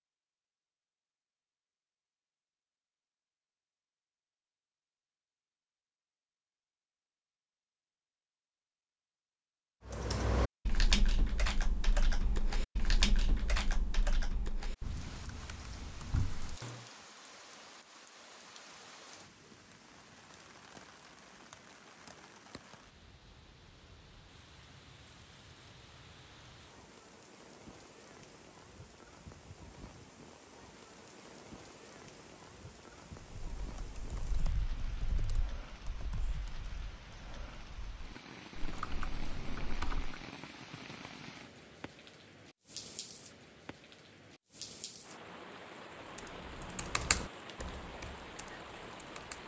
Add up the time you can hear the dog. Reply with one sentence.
You can't hear the dog here.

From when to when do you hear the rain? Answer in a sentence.
You can hear the rain from 14.8 to 49.4 s.